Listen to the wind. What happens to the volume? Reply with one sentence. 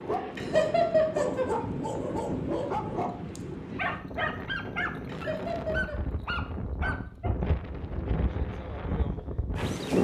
The loudness of the wind stays about the same.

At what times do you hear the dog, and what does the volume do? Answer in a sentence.
The dog can be heard from 0.0 to 7.3 s, at a steady volume.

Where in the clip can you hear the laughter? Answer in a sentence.
You can hear the laughter from 0.3 to 1.4 s and from 5.0 to 6.0 s.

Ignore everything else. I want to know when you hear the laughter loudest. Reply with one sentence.
The loudest moment of the laughter is at 1 second.